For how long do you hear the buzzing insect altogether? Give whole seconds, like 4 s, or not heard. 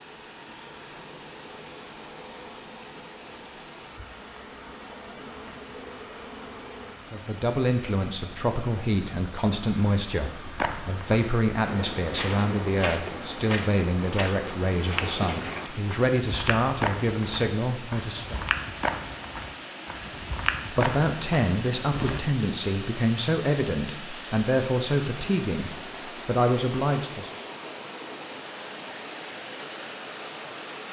7 s.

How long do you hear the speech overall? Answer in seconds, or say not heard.
18 s.